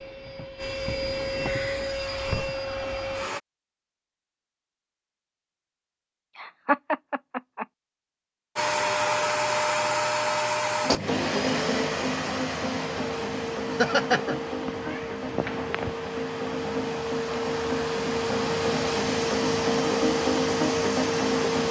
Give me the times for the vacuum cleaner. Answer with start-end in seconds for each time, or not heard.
0.0-3.4, 8.6-21.6.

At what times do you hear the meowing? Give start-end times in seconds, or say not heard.
14.7-15.9.